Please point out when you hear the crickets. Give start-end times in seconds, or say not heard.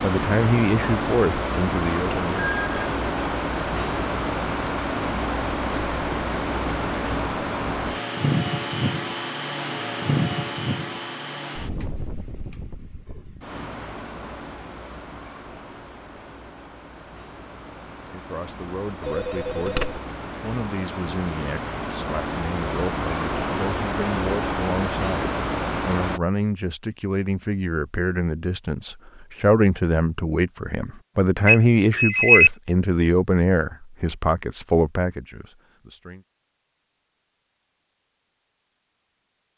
not heard.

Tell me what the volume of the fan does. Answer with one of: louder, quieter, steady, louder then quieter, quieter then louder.
quieter then louder.